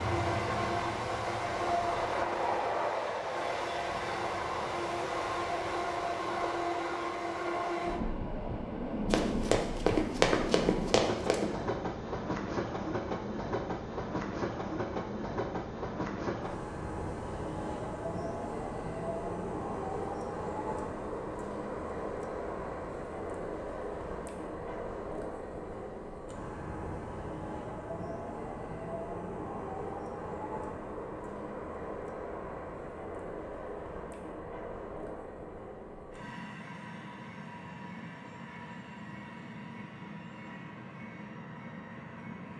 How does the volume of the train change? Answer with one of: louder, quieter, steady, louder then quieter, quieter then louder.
quieter.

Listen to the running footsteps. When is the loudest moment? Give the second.
10 s.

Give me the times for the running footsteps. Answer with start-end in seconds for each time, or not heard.
9.1-11.4.